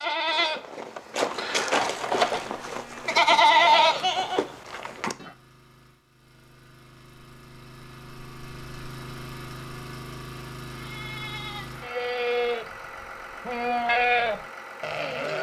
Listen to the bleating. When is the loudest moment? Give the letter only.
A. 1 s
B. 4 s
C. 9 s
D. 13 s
B.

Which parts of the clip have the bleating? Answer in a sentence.
You can hear the bleating from 0.0 to 5.3 s and from 10.8 to 15.3 s.